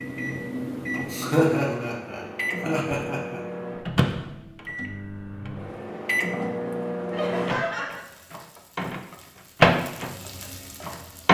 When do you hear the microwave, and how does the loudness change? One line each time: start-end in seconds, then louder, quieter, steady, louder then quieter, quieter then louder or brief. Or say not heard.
0.0-11.2 louder.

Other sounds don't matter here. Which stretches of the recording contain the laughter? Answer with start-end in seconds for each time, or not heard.
1.1-3.4, 7.1-8.1.